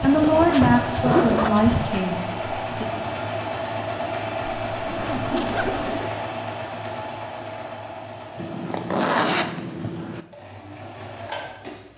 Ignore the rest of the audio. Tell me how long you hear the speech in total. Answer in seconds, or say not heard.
3 s.